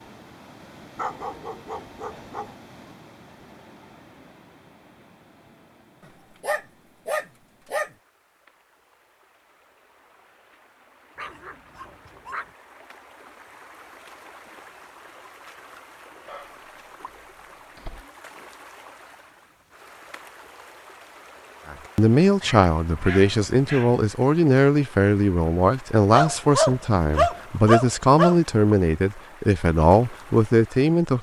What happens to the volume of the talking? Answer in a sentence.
The loudness of the talking stays about the same.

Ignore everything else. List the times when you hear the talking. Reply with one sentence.
The talking can be heard from 21.7 to 31.1 s.